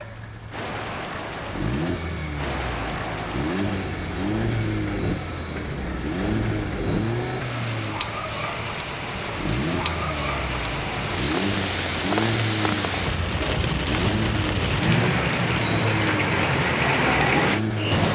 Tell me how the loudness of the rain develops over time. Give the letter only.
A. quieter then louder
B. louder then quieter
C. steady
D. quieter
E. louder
E.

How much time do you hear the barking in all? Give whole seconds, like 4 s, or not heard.
not heard.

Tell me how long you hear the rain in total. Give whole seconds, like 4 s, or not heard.
18 s.